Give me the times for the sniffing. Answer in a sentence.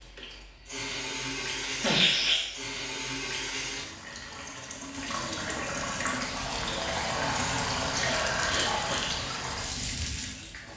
You can hear the sniffing from 1.6 to 2.5 s and from 7.9 to 9.1 s.